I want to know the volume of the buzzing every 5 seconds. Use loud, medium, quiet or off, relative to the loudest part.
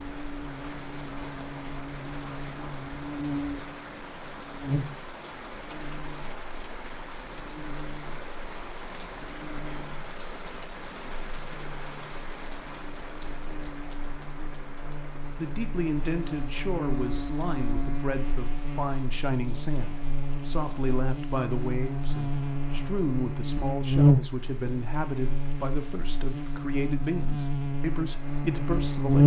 medium, quiet, quiet, medium, loud, loud.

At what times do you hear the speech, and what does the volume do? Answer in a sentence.
The speech can be heard from 15.3 to 29.2 s, at a steady volume.